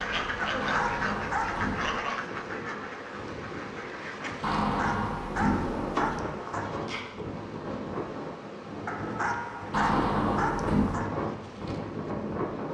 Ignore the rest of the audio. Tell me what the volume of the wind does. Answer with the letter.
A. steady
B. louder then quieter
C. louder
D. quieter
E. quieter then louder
C.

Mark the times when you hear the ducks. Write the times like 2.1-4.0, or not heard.
0.0-4.3.